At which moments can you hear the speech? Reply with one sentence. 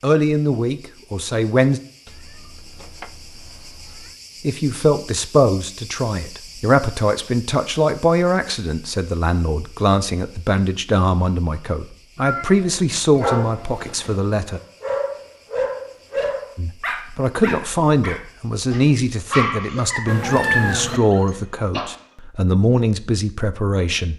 The speech can be heard from 0.0 to 1.8 s, from 4.4 to 14.6 s and from 16.6 to 24.1 s.